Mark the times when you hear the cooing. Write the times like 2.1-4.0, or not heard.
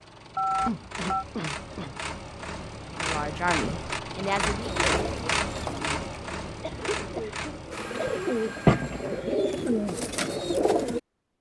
4.6-11.0.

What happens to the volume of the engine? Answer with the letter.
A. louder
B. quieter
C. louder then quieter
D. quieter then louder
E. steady
C.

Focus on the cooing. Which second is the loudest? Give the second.
9 s.